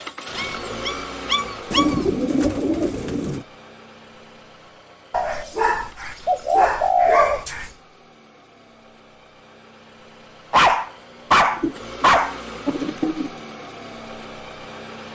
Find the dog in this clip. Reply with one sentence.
You can hear the dog from 0.3 to 2.0 s, from 5.1 to 7.7 s and from 10.5 to 12.3 s.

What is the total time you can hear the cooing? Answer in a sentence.
The cooing can be heard for 6 seconds in total.